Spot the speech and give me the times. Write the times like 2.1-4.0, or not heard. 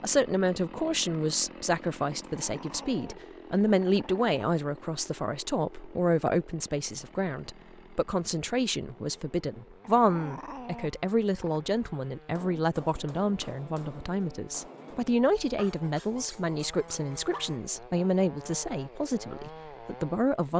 0.0-20.5.